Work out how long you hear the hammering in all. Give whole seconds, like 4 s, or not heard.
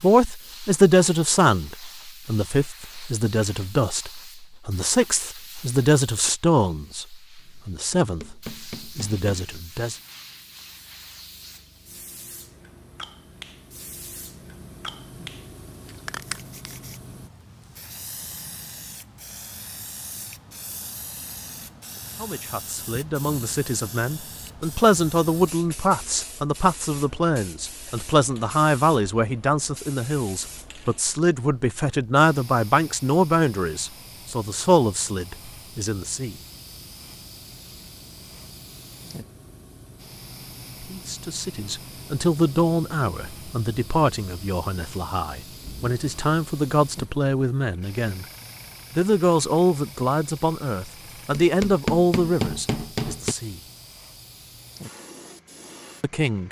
4 s.